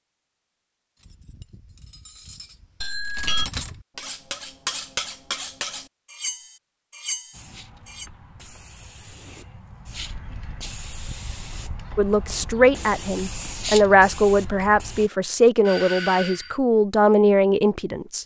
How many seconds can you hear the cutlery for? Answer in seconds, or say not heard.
7 s.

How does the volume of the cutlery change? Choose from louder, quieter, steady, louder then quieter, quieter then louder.
louder.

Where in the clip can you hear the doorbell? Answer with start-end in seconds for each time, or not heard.
2.8-3.5, 15.7-16.6.